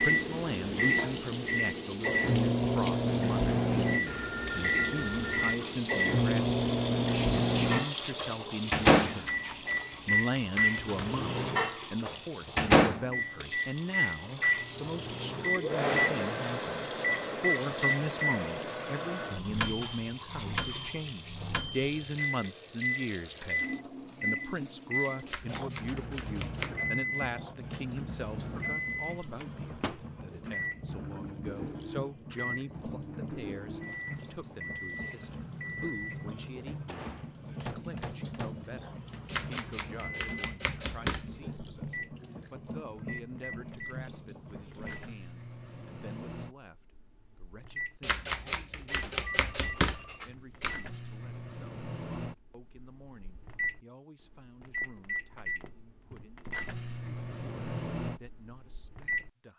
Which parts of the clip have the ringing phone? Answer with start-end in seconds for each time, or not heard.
4.0-5.5, 49.2-50.2.